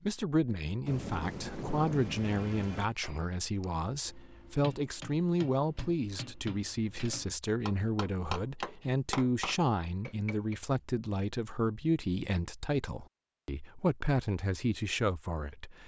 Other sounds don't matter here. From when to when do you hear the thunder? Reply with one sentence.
The thunder can be heard from 0.8 to 2.9 s.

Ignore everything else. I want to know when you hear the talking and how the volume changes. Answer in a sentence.
The talking can be heard from 0.0 to 15.8 s, at a steady volume.